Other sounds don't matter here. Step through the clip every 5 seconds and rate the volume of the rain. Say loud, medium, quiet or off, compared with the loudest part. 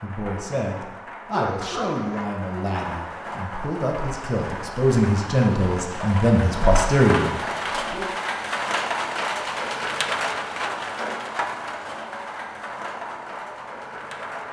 medium, loud, loud.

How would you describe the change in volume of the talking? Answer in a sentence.
The loudness of the talking goes up.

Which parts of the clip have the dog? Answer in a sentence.
You can hear the dog from 1.3 to 2.2 s.